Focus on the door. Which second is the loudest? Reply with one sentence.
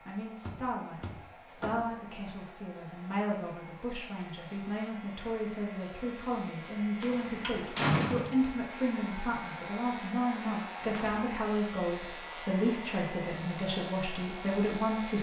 The loudest moment of the door is at 8 seconds.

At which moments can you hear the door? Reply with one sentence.
You can hear the door from 0.5 to 1.8 s, from 7.0 to 8.3 s and from 10.8 to 11.3 s.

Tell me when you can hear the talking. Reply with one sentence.
The talking can be heard from 0.1 to 15.1 s.